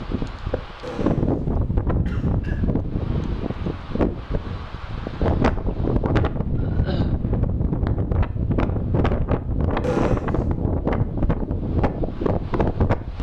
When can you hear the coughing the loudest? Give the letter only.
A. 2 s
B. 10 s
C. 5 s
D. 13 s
B.